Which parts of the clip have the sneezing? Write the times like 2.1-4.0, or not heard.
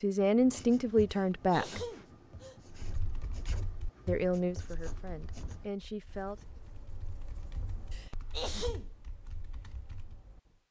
1.1-2.6, 7.9-8.9.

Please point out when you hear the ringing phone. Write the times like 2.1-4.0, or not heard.
not heard.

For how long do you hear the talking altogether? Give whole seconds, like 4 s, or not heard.
4 s.